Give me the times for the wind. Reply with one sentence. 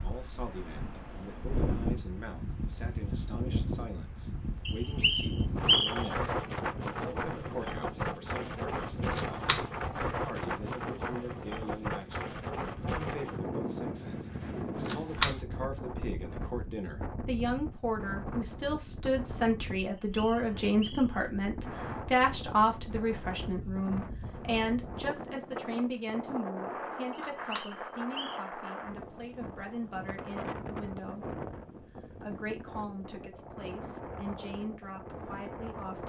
The wind can be heard from 0.0 to 36.0 s.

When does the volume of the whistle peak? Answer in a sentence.
The loudest moment of the whistle is at 6 seconds.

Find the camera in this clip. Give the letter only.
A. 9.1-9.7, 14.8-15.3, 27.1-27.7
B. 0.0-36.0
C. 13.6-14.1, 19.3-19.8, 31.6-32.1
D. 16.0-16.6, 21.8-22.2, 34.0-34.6
A.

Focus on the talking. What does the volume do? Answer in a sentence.
The volume of the talking goes up, then down.